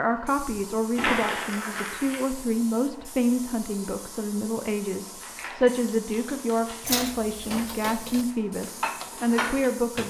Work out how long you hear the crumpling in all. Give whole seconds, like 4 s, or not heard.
3 s.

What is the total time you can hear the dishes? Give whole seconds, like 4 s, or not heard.
3 s.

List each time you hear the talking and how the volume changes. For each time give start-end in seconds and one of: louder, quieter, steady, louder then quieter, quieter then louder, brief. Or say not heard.
0.0-10.0 steady.